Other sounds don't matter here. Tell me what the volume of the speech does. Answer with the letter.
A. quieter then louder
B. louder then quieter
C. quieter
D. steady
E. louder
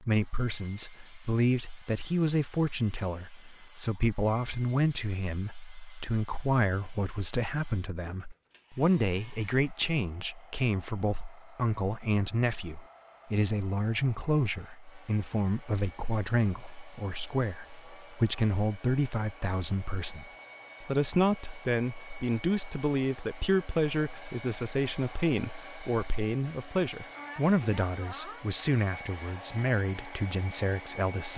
D.